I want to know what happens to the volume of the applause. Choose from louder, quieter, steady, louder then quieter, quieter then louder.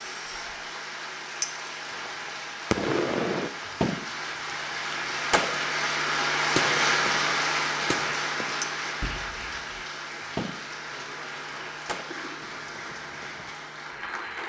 louder then quieter.